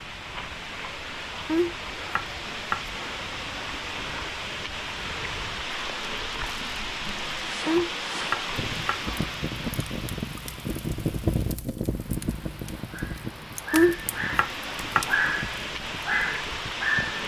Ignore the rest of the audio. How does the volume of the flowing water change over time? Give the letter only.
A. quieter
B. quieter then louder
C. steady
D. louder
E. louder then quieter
B.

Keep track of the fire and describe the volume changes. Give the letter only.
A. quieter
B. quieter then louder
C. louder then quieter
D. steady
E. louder
C.